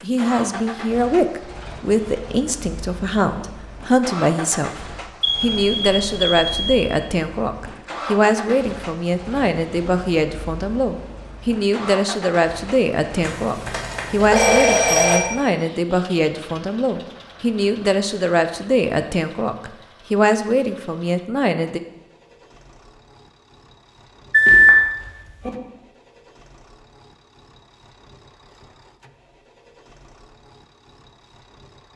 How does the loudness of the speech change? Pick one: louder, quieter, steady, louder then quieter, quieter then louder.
steady.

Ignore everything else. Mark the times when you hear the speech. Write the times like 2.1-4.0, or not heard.
0.0-21.8.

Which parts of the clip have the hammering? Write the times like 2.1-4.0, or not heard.
not heard.